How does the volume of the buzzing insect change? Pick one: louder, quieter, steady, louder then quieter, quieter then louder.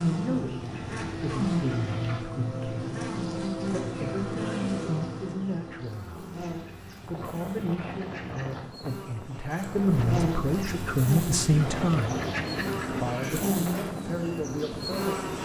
quieter then louder.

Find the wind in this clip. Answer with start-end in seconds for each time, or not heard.
7.0-15.4.